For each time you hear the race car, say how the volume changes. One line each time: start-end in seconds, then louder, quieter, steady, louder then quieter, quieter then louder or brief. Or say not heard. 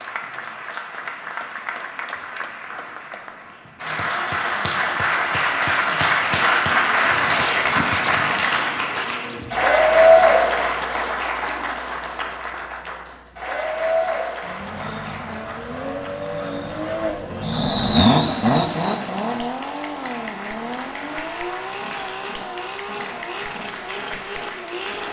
14.4-25.0 louder then quieter.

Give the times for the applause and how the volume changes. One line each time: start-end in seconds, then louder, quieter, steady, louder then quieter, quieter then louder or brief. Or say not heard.
0.0-25.0 louder then quieter.